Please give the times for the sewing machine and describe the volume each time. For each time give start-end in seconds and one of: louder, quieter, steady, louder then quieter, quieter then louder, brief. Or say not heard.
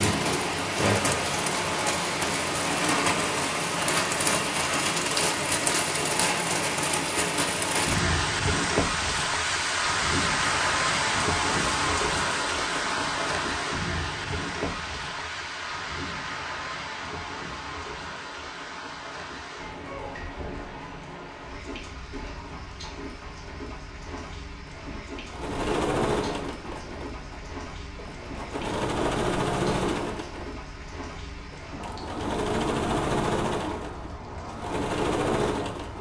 25.2-35.9 steady.